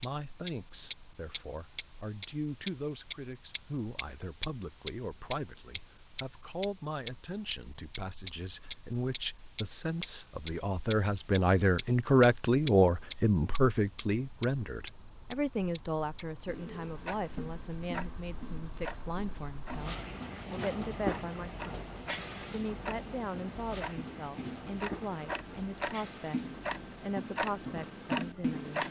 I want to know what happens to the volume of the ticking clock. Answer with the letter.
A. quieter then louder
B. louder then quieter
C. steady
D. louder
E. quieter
A.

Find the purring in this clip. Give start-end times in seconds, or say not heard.
not heard.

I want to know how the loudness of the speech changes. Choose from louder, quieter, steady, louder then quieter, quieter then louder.
louder then quieter.